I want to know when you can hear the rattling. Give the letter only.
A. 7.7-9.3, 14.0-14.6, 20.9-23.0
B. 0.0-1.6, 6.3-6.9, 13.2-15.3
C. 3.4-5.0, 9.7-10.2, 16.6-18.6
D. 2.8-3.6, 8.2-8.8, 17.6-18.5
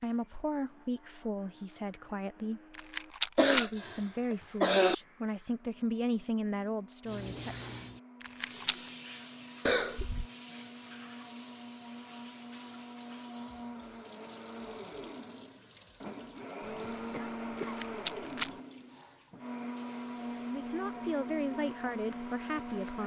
D.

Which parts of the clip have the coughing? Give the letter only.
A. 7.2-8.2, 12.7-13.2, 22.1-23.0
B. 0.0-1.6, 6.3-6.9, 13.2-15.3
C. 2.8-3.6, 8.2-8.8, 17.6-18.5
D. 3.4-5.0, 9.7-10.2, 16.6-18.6
D.